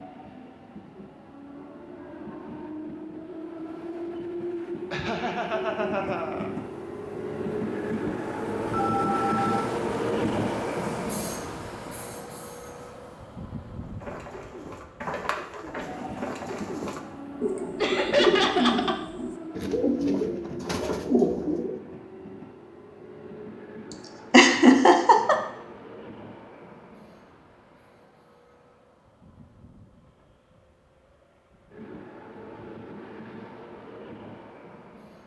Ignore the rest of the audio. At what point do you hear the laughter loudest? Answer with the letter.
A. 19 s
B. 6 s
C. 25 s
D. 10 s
C.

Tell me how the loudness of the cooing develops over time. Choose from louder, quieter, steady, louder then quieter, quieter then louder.
louder.